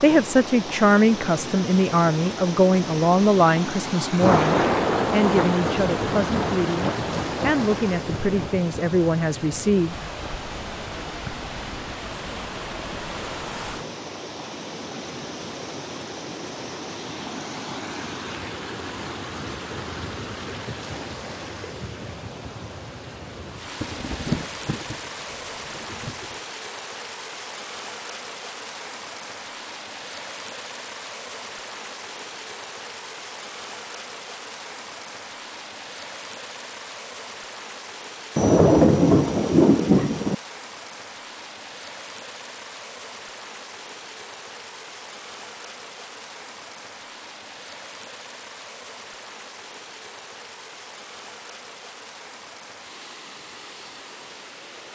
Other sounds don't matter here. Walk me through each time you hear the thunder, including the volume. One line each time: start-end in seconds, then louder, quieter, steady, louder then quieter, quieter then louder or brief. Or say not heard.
4.2-8.6 quieter
23.7-26.4 brief
38.4-40.4 brief.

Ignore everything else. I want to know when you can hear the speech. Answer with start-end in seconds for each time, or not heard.
0.0-9.9.